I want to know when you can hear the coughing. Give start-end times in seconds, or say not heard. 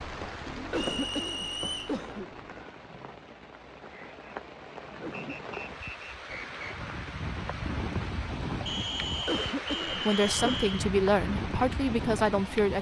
0.6-2.3, 4.8-5.3, 9.1-10.8.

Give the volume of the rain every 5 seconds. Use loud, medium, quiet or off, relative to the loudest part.
medium, loud, loud.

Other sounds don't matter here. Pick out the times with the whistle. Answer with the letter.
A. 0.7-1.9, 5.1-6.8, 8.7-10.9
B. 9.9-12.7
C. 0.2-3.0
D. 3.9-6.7
A.